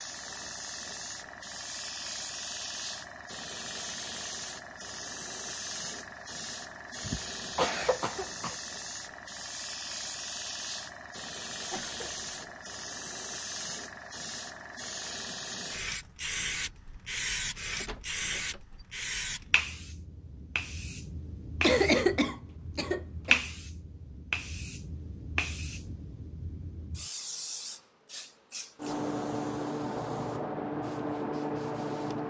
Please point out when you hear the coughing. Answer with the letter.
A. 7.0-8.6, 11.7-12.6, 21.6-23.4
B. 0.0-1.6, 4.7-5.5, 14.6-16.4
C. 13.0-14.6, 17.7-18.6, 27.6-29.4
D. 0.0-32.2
A.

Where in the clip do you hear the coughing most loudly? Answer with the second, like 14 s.
22 s.